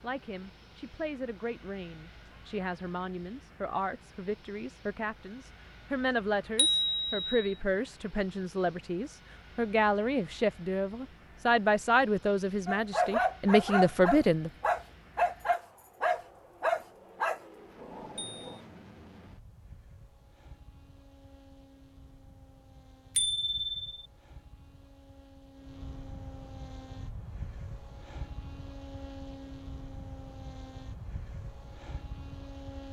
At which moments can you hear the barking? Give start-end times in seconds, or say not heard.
12.7-18.6.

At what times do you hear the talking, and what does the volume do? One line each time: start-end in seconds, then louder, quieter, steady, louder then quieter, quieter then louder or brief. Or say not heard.
0.0-14.5 louder.